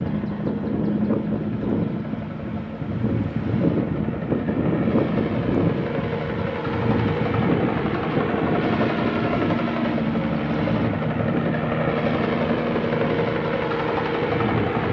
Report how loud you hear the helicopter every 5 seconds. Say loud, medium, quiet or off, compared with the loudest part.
medium, loud, loud.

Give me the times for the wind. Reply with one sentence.
You can hear the wind from 0.0 to 14.8 s.